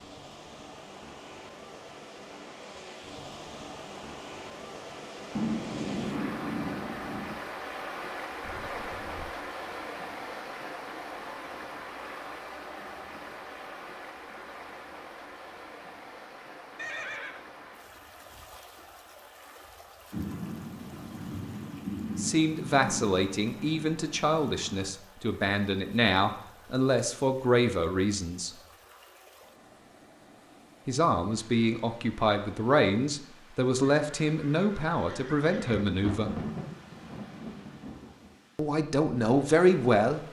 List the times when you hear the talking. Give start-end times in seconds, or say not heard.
22.1-28.6, 30.9-36.4, 38.5-40.2.